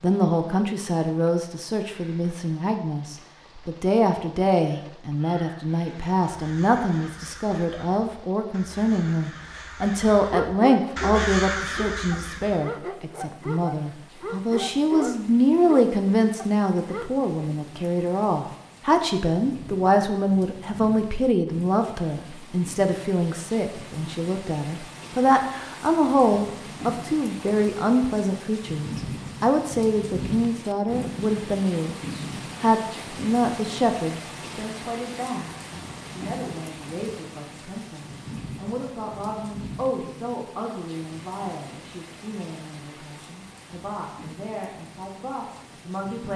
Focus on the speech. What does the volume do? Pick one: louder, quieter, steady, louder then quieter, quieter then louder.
quieter.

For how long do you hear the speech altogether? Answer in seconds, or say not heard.
46 s.